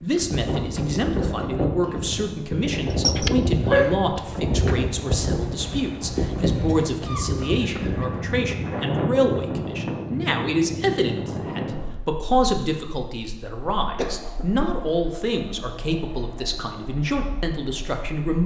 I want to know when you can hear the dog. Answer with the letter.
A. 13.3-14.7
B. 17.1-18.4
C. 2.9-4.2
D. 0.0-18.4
C.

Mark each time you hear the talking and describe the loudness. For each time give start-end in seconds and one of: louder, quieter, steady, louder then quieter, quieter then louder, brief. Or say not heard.
0.0-18.4 steady.